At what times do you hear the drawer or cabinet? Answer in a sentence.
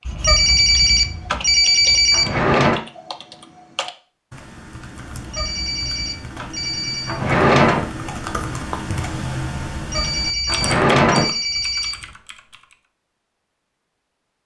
The drawer or cabinet can be heard from 2.1 to 2.8 s, from 7.0 to 7.9 s and from 10.4 to 11.2 s.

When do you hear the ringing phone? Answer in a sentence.
The ringing phone can be heard from 0.1 to 2.5 s, from 5.2 to 7.2 s and from 9.8 to 12.2 s.